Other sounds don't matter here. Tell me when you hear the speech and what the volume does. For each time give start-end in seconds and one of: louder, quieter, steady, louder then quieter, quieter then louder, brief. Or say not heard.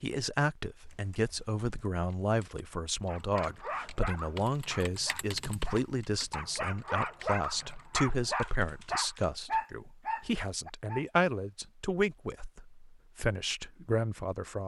0.0-14.6 steady.